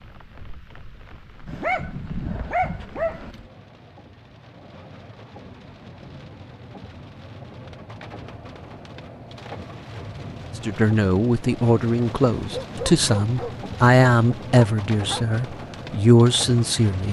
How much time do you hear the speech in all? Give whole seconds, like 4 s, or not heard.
6 s.